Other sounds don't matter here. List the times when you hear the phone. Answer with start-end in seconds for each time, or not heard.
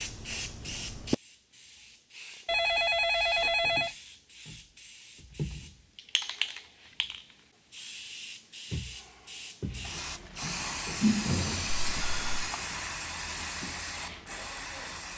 2.5-3.9, 11.7-12.5.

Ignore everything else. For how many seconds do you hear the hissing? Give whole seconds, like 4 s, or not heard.
15 s.